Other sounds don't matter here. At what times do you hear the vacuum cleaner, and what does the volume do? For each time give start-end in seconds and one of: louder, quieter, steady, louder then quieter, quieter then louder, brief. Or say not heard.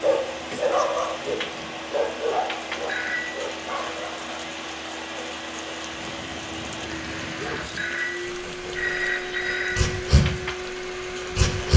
0.0-11.7 steady.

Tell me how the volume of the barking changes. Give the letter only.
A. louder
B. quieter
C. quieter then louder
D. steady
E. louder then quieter
C.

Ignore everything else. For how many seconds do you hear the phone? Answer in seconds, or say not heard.
3 s.